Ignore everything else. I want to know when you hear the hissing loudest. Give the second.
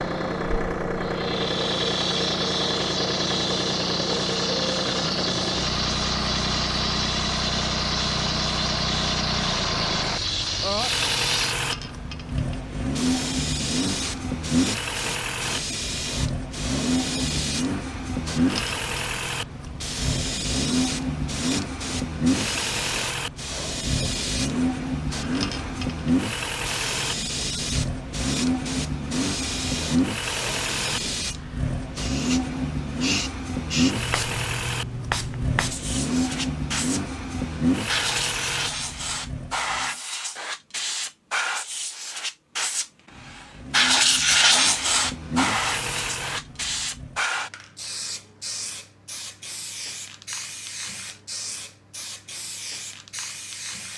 44 s.